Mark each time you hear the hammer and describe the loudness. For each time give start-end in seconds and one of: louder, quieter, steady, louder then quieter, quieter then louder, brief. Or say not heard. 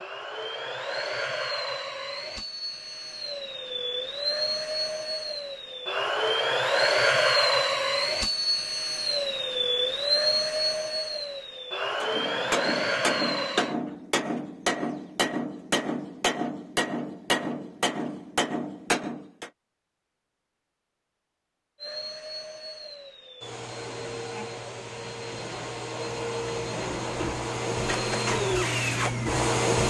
12.0-19.5 steady.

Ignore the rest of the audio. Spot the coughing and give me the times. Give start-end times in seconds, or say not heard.
not heard.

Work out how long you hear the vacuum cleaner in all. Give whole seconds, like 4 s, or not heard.
22 s.